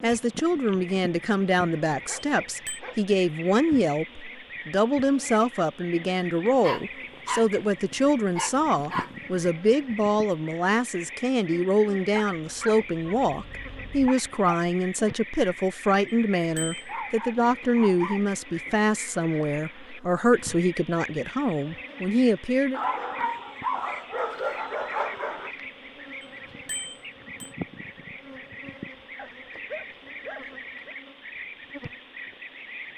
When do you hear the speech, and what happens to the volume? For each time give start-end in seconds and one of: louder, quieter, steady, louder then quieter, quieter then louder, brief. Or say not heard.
0.0-22.8 steady.